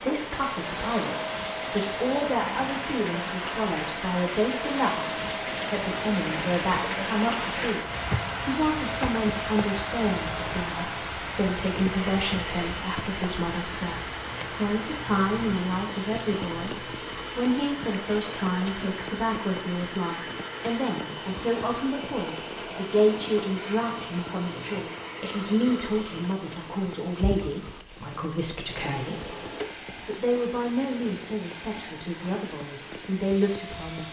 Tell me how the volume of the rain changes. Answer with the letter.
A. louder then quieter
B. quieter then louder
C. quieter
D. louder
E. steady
C.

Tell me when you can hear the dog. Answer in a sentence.
You can't hear the dog here.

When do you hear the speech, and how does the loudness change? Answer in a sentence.
You can hear the speech from 0.0 to 29.4 s, at a steady volume; and from 30.0 to 34.0 s, getting quieter then louder.